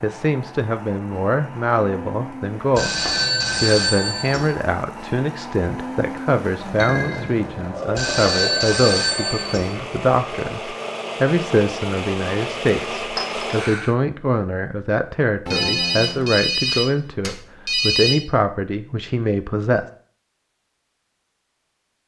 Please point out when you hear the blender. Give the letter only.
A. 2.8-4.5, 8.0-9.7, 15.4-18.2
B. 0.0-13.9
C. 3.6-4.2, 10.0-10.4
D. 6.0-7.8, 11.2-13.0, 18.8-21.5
B.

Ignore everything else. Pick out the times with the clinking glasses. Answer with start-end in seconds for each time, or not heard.
6.8-7.4, 13.2-13.6.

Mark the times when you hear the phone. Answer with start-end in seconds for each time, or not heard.
2.8-4.5, 8.0-9.7, 15.4-18.2.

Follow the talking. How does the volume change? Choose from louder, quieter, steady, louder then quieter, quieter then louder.
steady.